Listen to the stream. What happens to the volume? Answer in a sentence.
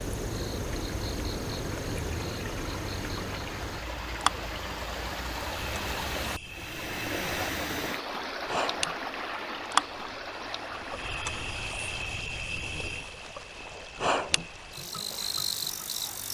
The volume of the stream goes up, then down.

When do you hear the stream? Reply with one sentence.
You can hear the stream from 0.0 to 16.3 s.